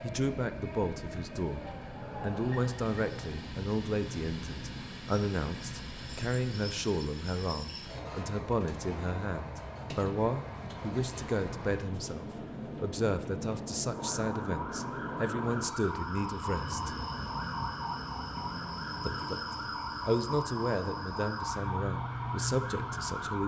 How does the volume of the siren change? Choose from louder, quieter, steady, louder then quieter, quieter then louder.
steady.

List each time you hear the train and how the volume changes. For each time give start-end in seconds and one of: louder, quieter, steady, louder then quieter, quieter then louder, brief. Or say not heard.
0.0-23.4 steady.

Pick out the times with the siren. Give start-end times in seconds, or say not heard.
13.9-23.4.